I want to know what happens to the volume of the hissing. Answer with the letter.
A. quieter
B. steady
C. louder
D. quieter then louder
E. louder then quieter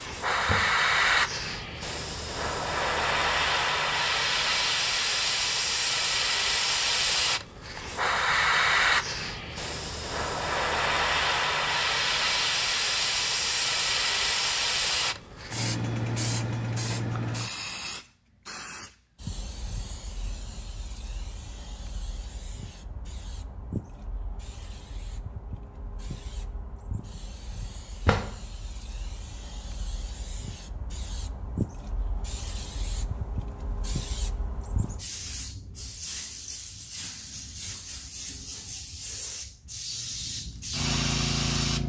D.